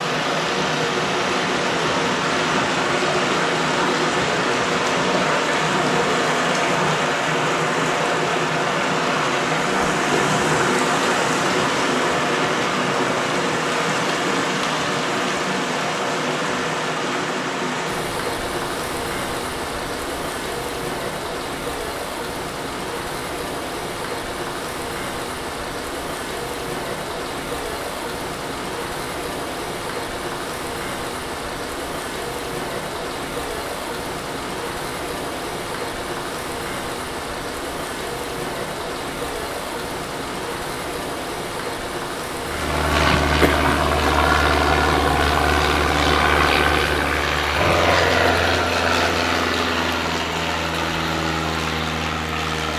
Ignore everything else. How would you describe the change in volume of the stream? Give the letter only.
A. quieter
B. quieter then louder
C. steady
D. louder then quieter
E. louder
A.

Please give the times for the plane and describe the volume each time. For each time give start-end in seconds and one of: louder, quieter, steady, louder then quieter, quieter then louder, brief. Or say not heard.
42.4-52.7 quieter.